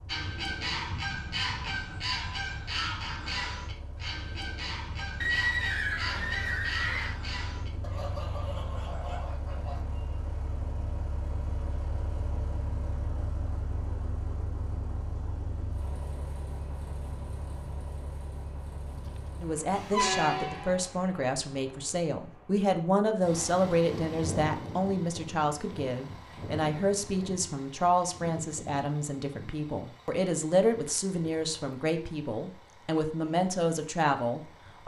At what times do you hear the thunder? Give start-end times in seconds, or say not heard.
not heard.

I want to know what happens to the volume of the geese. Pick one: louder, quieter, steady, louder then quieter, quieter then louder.
quieter.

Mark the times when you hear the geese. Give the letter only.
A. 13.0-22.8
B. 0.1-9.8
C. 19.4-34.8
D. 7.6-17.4
B.